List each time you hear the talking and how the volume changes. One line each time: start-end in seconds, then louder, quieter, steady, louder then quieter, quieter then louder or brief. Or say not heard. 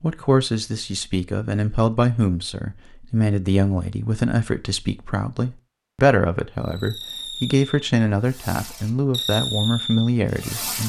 0.0-10.8 steady.